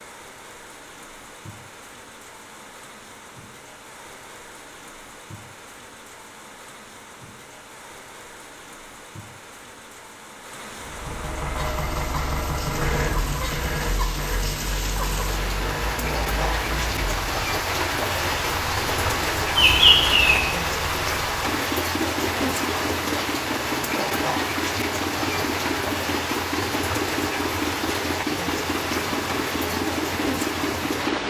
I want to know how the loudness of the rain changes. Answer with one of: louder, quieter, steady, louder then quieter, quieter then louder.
louder.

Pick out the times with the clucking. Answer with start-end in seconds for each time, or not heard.
19.6-20.4.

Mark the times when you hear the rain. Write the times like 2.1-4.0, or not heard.
0.0-31.2.